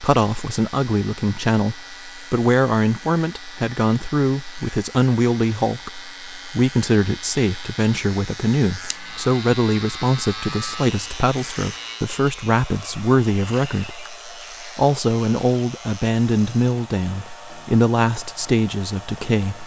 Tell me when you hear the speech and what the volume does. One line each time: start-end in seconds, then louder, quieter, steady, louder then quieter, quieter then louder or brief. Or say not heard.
0.0-19.6 steady.